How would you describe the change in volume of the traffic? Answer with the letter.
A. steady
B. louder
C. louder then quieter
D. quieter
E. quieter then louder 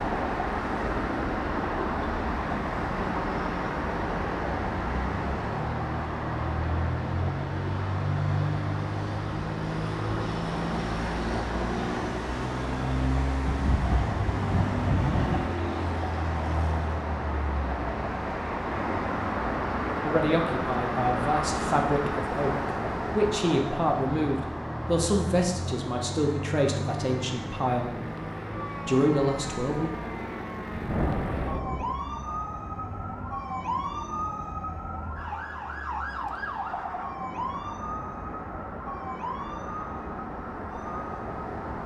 D.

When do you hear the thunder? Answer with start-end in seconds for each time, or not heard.
13.4-15.5, 30.7-31.9.